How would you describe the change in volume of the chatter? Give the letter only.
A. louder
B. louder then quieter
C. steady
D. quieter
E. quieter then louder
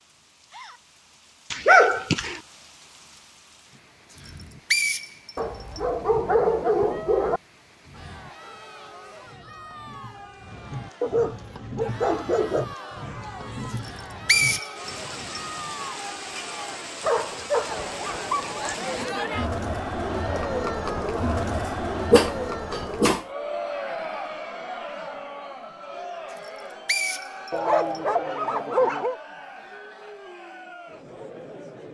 B.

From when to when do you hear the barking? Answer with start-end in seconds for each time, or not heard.
1.5-2.4, 5.3-7.4, 11.0-12.7, 17.0-18.7, 22.1-23.2, 27.5-29.1.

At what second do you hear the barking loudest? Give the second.
2 s.